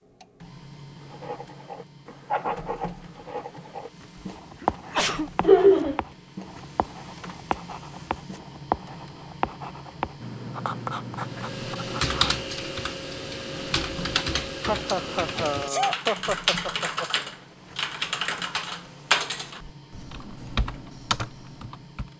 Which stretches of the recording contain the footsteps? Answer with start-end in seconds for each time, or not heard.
not heard.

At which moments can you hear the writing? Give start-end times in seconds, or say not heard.
1.1-12.4.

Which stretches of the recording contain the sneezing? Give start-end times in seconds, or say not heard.
4.2-5.3, 15.3-15.9.